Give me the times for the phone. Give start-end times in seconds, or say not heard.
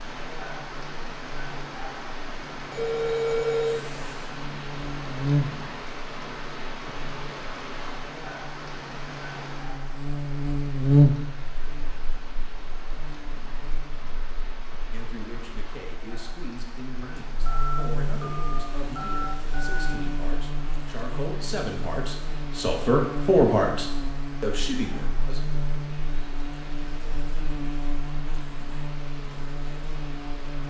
2.7-4.2, 17.4-19.9.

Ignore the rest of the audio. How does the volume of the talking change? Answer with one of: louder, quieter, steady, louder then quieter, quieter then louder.
louder.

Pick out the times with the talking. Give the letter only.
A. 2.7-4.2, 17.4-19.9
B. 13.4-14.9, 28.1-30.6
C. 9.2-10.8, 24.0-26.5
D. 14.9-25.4
D.